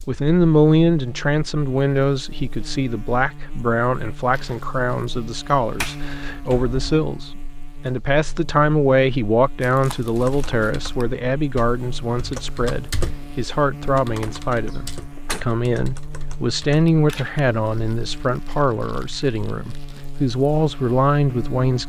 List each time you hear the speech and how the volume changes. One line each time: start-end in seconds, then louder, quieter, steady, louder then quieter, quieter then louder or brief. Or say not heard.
0.1-21.8 steady.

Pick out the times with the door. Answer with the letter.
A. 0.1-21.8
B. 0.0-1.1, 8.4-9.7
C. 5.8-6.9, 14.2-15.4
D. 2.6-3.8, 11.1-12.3
C.